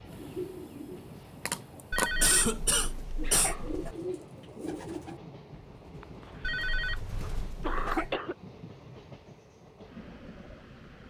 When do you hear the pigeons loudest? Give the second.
2 s.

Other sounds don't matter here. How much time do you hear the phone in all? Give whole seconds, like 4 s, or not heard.
4 s.